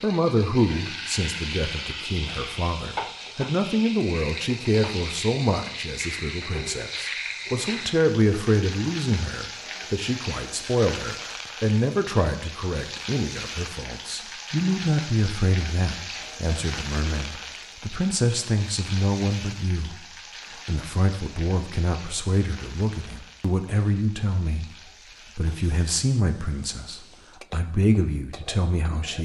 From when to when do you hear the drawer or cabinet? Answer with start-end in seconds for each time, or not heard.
not heard.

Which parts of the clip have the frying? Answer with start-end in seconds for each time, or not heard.
0.0-29.1.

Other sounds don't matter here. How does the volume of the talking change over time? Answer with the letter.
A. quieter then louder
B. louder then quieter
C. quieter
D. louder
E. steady
E.